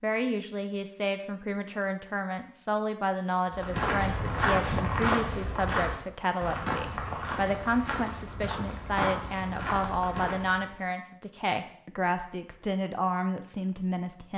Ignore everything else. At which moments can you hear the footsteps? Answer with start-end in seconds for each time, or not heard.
3.5-10.7.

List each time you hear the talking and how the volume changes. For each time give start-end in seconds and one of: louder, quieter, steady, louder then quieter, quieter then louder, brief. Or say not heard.
0.0-14.3 steady.